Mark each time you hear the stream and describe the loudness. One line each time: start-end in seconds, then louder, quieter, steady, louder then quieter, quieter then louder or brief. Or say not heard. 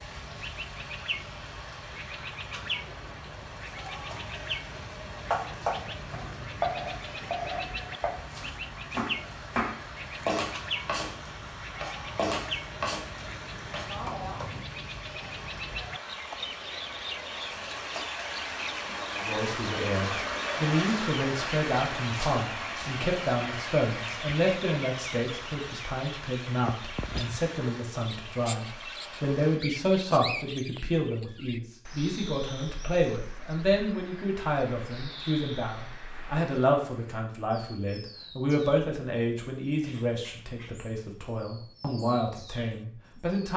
0.0-29.6 louder then quieter.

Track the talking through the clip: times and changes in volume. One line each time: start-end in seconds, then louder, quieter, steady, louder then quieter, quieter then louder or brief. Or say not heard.
19.1-43.5 steady.